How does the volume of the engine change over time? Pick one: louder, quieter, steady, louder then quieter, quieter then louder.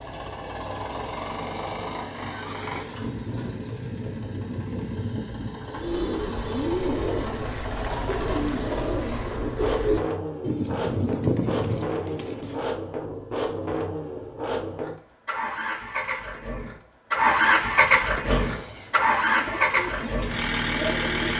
louder.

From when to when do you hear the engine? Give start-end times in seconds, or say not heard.
0.0-21.3.